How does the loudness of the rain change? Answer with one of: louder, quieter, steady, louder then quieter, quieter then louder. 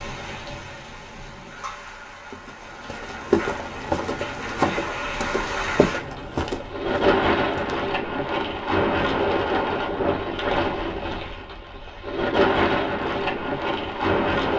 louder.